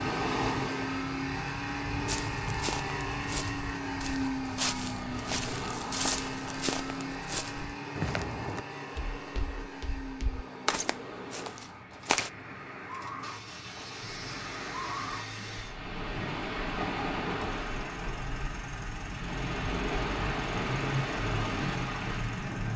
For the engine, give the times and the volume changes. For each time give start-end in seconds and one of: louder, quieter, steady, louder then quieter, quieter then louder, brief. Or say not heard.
0.0-22.7 quieter then louder.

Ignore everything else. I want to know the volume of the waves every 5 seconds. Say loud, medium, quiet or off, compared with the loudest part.
loud, medium, medium, loud, loud.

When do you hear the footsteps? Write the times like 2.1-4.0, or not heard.
2.0-12.3.